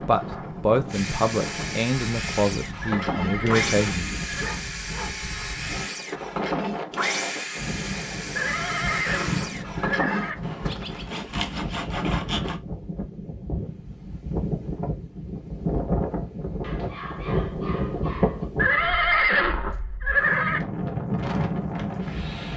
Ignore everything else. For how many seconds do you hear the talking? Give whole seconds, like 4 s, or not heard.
4 s.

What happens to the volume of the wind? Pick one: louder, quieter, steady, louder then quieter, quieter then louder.
louder.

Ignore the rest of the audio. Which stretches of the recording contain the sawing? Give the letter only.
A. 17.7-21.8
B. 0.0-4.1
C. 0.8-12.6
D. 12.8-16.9
C.